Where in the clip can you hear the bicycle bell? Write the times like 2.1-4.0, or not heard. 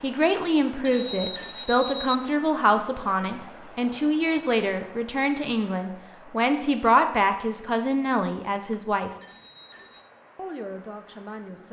0.1-2.1, 8.6-10.1.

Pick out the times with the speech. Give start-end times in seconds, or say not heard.
0.0-9.1, 10.3-11.6.